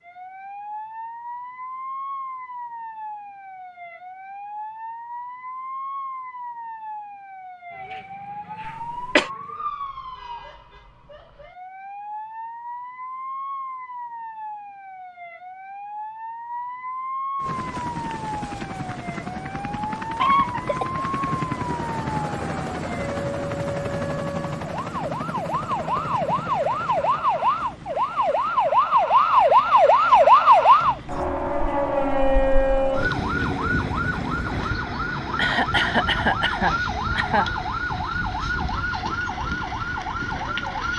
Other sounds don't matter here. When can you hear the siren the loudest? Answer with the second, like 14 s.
30 s.